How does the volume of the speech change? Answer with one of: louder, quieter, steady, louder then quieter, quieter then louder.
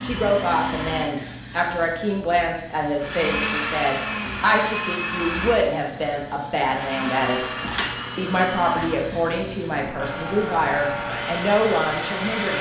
steady.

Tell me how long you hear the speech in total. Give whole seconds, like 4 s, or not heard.
12 s.